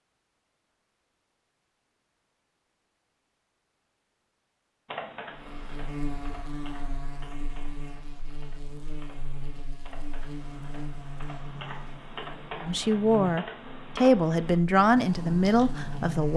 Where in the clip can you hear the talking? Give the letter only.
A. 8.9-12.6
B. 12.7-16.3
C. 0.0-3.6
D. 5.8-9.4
B.